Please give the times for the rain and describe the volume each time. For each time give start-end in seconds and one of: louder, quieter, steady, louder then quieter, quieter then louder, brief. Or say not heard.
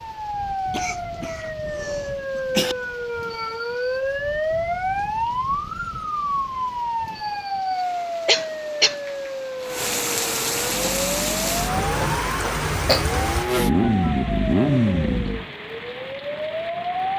0.0-17.1 louder then quieter.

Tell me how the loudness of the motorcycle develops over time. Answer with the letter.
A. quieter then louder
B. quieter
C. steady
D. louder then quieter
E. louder
E.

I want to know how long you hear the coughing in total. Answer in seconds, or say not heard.
4 s.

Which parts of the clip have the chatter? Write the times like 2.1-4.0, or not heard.
not heard.